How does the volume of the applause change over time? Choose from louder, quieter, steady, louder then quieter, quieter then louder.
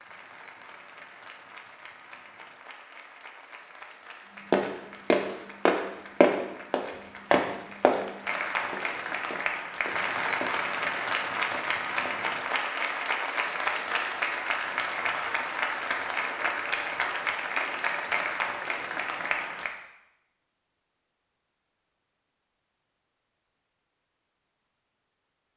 louder.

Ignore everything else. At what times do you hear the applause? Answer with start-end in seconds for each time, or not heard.
0.0-19.7.